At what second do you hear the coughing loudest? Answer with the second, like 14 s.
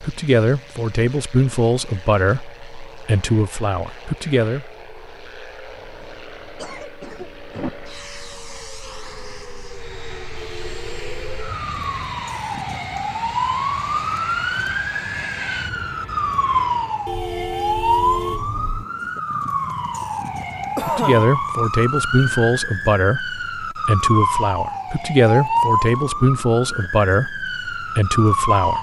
21 s.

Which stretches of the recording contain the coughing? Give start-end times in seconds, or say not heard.
6.0-7.9, 11.4-12.2, 20.8-21.2.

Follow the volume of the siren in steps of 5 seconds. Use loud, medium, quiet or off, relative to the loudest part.
quiet, quiet, loud, loud, loud, loud.